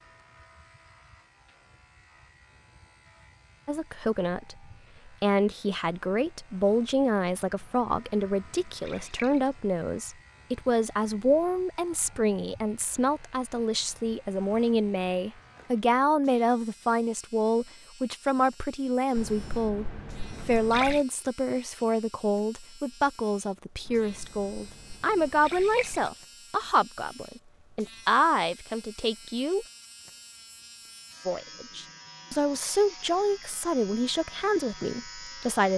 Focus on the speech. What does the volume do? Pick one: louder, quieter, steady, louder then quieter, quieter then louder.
steady.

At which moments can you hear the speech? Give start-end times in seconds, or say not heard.
3.6-29.6, 31.2-35.7.